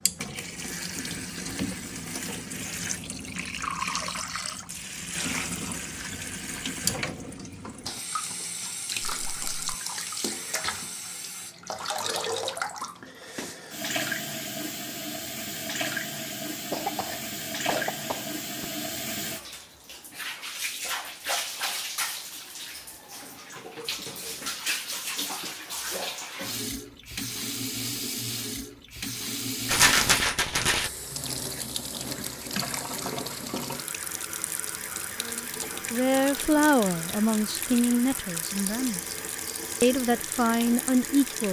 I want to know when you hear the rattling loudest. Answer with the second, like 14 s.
30 s.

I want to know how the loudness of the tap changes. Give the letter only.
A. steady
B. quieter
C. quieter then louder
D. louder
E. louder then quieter
A.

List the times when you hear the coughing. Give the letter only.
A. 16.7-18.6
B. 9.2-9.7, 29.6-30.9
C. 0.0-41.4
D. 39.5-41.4
A.